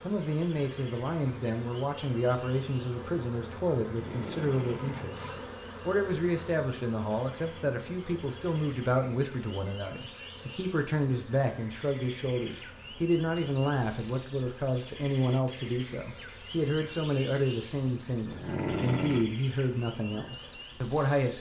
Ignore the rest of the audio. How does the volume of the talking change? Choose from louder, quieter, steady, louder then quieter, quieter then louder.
steady.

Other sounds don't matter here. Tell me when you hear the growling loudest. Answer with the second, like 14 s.
19 s.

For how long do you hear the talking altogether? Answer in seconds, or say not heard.
21 s.